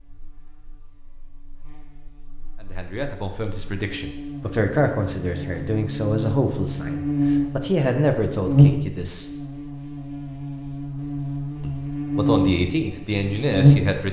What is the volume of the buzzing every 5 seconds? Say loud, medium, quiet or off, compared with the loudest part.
quiet, loud, loud.